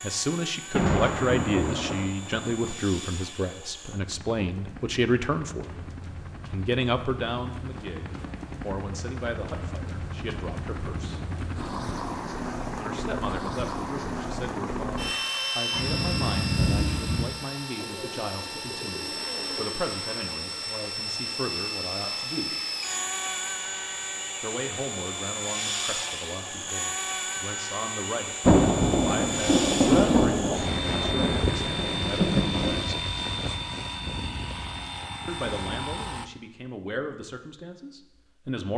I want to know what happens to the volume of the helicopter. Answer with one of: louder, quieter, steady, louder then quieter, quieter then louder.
louder.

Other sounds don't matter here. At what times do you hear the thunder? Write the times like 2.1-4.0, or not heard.
0.8-2.8, 15.8-17.2, 28.4-32.9.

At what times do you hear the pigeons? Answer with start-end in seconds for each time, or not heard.
17.8-19.8.